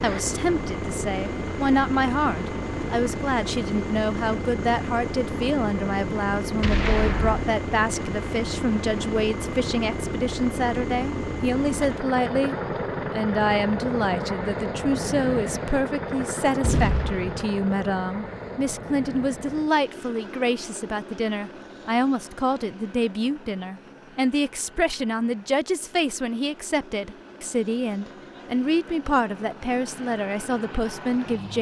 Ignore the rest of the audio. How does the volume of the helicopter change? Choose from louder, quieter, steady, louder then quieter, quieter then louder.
quieter.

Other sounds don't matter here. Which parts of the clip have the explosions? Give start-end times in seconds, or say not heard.
6.6-7.5, 16.6-17.5.